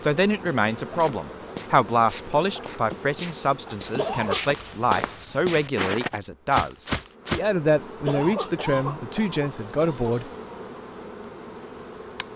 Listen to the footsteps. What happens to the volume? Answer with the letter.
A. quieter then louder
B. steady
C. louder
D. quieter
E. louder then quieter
C.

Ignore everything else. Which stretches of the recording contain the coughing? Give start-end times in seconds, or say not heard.
4.0-4.5, 8.1-10.1.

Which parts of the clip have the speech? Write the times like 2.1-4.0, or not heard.
0.0-10.3.